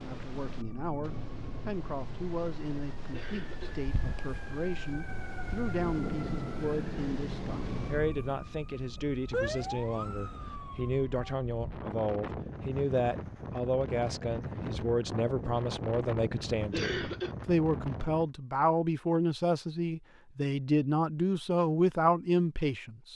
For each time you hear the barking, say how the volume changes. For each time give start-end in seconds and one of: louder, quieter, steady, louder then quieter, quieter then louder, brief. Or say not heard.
not heard.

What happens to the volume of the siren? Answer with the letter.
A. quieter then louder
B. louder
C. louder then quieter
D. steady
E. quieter
B.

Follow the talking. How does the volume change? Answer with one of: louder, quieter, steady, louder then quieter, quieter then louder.
louder.